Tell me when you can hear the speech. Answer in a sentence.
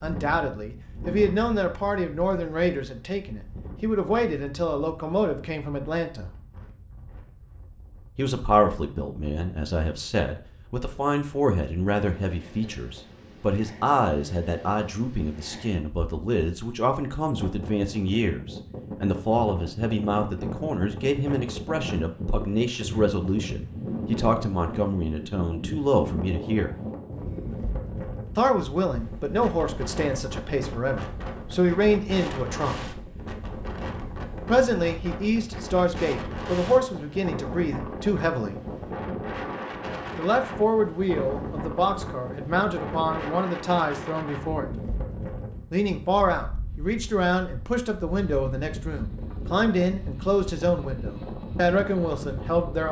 You can hear the speech from 0.0 to 6.3 s, from 8.2 to 26.8 s, from 28.4 to 33.0 s, from 34.5 to 38.6 s, from 40.1 to 44.6 s and from 45.7 to 52.8 s.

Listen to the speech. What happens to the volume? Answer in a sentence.
The volume of the speech stays about the same.